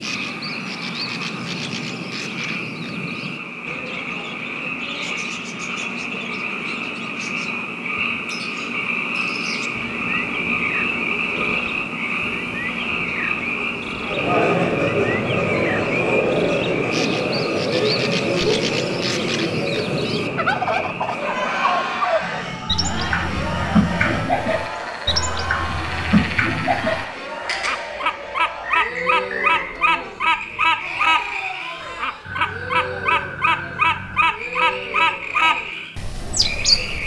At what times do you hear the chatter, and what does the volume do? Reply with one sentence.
The chatter can be heard from 14.1 to 37.0 s, getting quieter.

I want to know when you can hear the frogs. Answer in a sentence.
You can hear the frogs from 0.0 to 37.0 s.